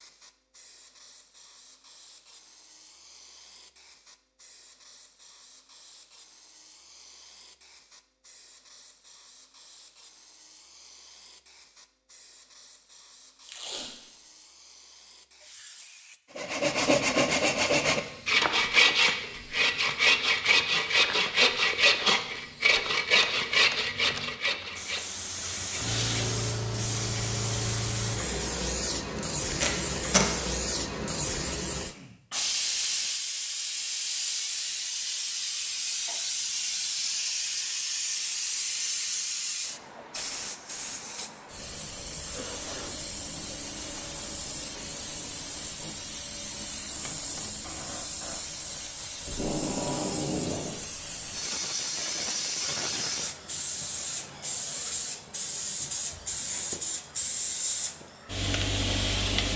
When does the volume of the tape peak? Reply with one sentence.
The loudest moment of the tape is at 30 seconds.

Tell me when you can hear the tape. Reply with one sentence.
You can hear the tape from 13.4 to 14.1 s, from 29.5 to 30.2 s and from 49.2 to 50.8 s.